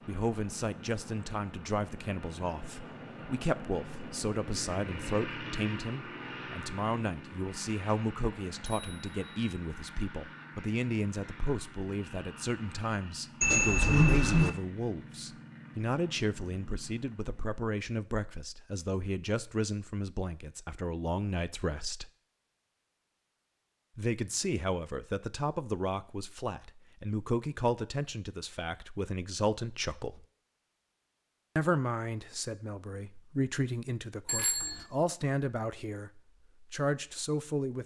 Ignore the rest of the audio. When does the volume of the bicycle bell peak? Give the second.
14 s.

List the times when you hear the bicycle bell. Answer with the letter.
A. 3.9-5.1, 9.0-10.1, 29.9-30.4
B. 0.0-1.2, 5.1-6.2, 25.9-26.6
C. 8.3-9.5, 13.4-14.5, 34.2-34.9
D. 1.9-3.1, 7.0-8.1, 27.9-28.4
C.